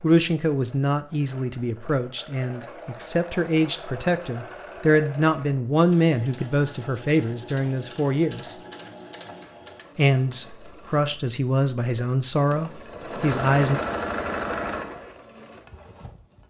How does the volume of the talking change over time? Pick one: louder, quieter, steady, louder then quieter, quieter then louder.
steady.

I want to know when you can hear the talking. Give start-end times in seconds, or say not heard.
0.0-8.6, 9.9-13.8.